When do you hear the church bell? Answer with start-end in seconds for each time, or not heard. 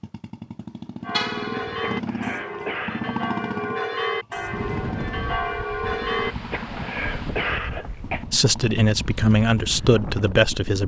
1.0-6.3.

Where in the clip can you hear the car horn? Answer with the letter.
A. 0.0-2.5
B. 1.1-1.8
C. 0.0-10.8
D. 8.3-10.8
B.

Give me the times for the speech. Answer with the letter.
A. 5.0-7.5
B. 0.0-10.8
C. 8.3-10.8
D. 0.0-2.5
C.